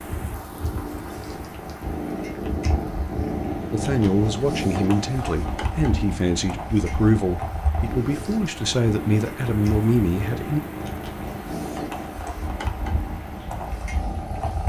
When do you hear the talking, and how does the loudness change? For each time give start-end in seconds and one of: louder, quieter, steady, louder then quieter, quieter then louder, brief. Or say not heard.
3.7-10.6 steady.